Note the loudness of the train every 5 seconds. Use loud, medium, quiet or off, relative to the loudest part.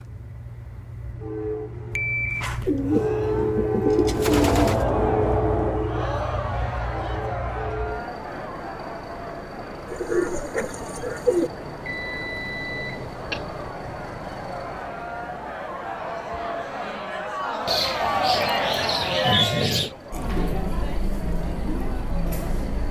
loud, loud, medium, quiet, quiet.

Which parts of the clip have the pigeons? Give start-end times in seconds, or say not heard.
2.6-4.8, 9.8-11.5, 17.6-19.9.